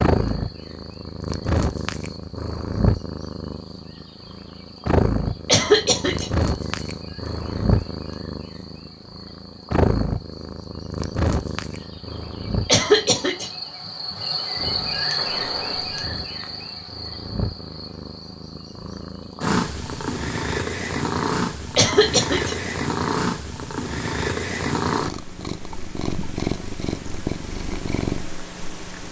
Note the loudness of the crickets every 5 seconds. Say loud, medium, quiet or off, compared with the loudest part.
quiet, quiet, loud, loud, off, off.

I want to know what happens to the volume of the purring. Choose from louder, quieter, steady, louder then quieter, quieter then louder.
quieter then louder.